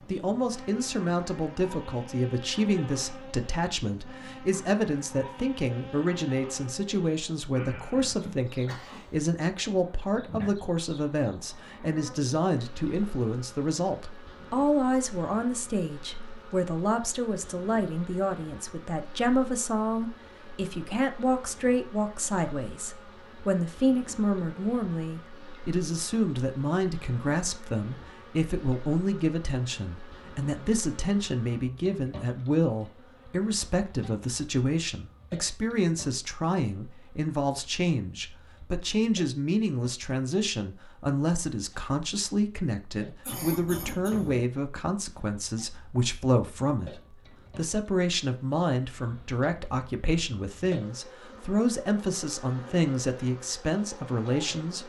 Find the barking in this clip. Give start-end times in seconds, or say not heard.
not heard.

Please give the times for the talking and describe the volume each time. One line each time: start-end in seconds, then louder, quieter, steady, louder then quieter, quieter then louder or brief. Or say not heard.
0.1-54.8 steady.